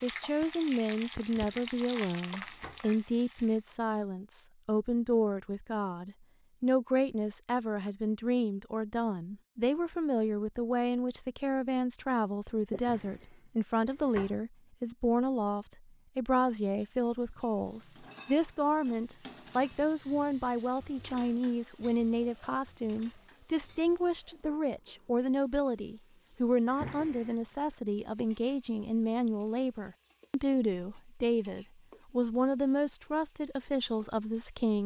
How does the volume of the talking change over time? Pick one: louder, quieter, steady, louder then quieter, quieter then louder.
steady.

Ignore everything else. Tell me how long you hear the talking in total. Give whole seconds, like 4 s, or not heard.
35 s.